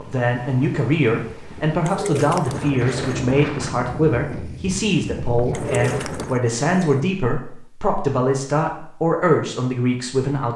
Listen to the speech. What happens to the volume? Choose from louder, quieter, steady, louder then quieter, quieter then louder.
steady.